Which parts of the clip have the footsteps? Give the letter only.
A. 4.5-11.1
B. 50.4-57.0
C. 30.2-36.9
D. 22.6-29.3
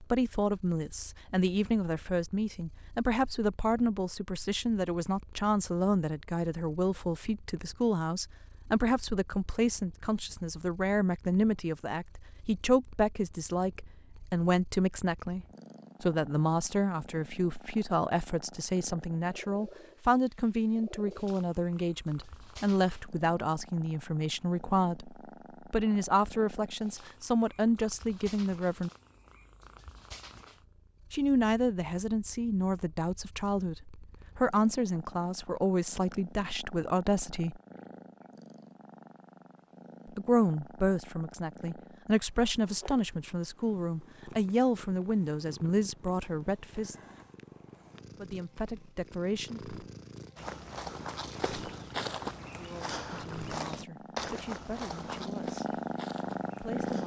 B.